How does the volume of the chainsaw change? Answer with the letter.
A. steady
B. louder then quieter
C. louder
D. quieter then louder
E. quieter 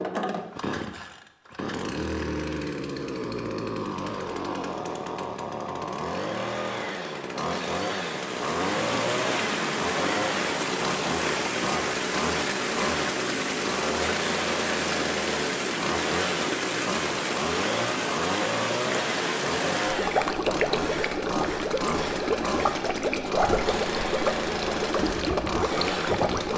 A.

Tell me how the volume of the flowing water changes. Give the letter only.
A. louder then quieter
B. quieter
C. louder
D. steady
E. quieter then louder
D.